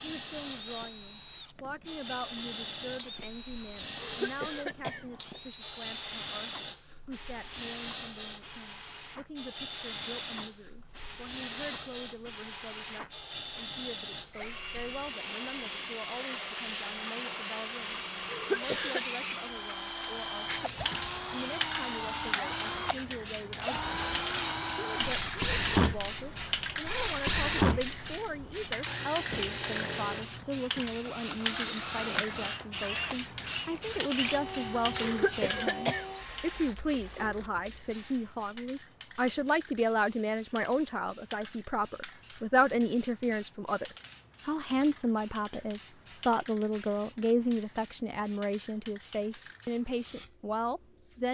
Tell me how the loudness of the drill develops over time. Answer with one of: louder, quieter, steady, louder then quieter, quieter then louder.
louder then quieter.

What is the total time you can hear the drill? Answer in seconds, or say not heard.
38 s.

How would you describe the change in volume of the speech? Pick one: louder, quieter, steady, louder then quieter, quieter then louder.
louder.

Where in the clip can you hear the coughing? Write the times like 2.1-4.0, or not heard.
4.0-5.0, 18.2-19.1, 35.0-36.0.